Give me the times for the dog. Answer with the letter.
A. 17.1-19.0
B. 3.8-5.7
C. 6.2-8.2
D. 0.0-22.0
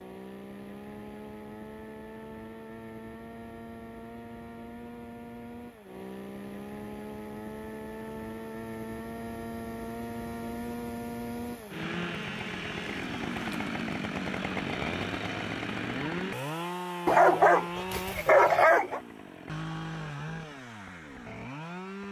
A.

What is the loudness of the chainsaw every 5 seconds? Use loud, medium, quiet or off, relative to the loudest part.
medium, medium, loud, loud, medium.